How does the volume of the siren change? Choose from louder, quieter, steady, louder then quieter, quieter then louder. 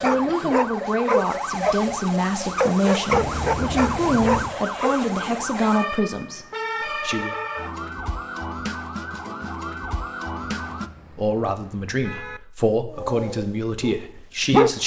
steady.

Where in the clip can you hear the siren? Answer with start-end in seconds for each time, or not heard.
0.0-10.9.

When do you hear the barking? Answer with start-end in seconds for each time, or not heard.
0.0-1.8, 2.5-5.0, 12.9-14.8.